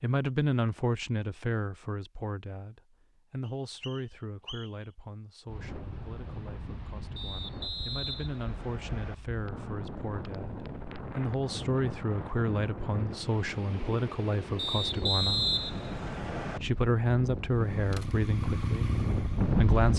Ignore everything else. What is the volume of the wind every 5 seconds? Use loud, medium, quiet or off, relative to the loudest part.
off, medium, medium, loud.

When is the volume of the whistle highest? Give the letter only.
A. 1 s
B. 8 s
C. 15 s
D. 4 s
C.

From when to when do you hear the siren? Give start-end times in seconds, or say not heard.
not heard.